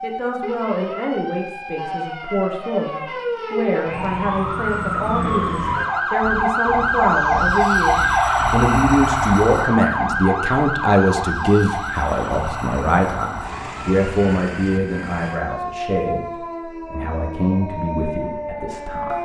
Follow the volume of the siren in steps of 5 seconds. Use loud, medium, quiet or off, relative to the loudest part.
medium, loud, medium, medium.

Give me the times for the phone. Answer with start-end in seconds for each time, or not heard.
not heard.